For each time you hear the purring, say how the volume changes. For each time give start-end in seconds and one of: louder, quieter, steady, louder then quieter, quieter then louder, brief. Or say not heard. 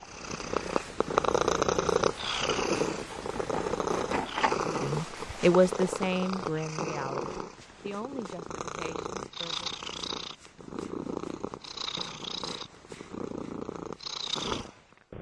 0.0-15.1 quieter.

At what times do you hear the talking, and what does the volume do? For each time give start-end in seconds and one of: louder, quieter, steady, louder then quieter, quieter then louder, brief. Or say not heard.
4.7-9.7 quieter.